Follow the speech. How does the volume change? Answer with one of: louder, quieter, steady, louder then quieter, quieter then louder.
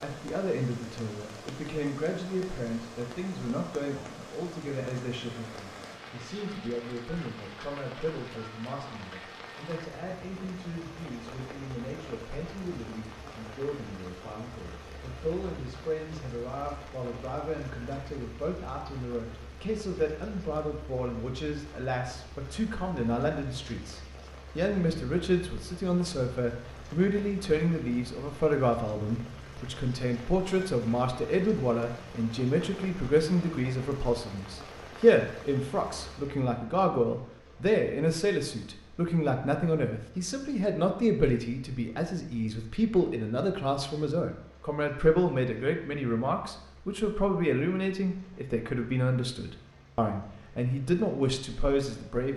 louder.